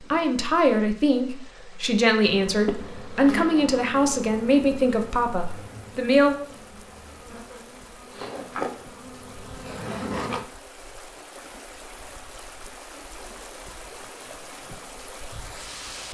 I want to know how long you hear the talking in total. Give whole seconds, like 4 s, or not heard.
6 s.